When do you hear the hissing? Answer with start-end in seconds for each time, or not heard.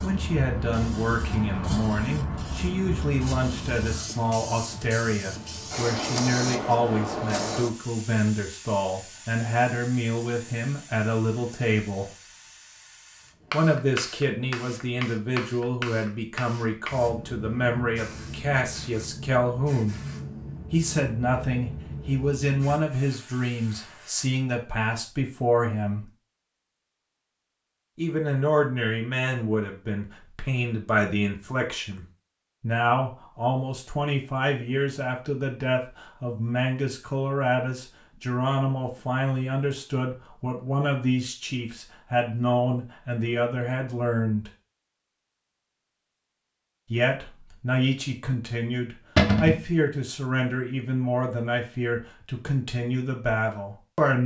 0.0-24.2.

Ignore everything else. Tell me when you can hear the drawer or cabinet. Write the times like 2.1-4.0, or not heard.
49.1-49.6.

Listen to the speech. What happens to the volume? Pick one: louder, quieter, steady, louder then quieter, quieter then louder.
steady.